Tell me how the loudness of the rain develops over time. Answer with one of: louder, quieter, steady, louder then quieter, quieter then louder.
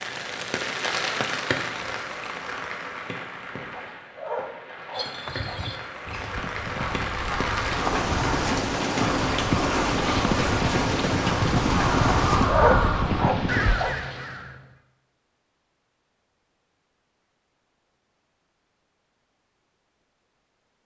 quieter then louder.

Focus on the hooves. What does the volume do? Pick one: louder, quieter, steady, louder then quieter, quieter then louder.
louder.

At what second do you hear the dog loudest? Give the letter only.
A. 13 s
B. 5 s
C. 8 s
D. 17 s
A.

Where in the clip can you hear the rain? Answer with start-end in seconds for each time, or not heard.
0.0-12.6.